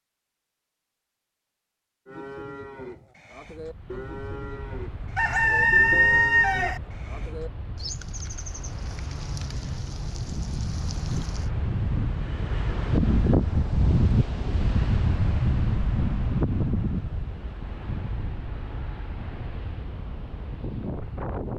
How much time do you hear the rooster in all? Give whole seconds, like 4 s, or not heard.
2 s.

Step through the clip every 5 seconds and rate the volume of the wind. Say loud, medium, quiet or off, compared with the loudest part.
quiet, quiet, loud, loud, medium.